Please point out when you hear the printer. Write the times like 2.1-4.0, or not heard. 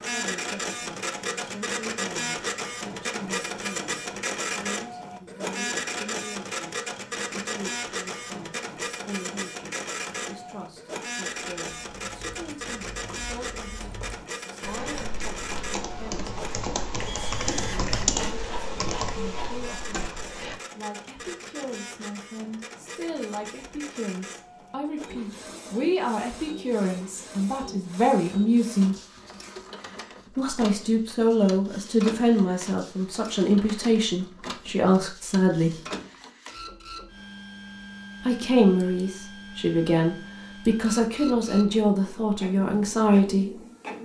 0.0-44.0.